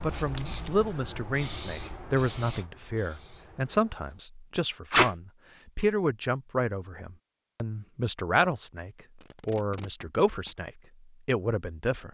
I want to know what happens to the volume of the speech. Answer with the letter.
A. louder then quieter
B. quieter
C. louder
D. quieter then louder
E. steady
E.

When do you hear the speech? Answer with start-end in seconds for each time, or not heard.
0.0-12.0.